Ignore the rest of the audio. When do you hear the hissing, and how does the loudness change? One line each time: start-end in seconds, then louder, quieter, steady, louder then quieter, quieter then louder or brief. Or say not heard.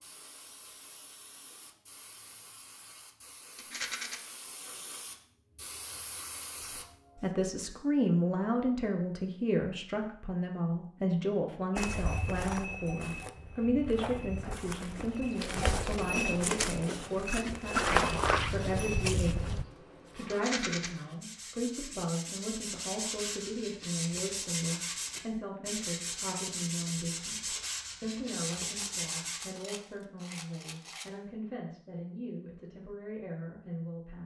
0.0-7.3 louder.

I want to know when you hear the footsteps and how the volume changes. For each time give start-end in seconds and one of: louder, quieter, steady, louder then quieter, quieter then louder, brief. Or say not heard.
11.8-19.6 louder.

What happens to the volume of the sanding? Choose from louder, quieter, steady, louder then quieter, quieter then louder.
louder.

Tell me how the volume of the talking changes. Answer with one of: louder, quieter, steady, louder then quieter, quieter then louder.
quieter.